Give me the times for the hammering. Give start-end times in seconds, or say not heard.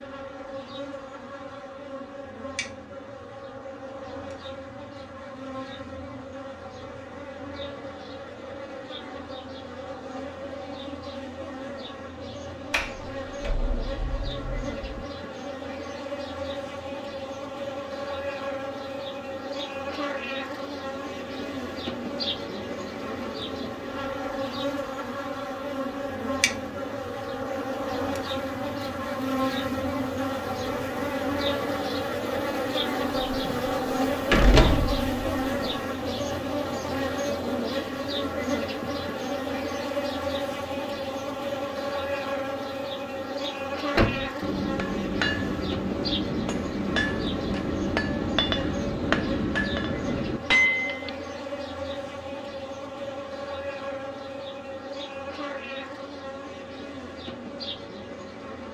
44.4-51.1.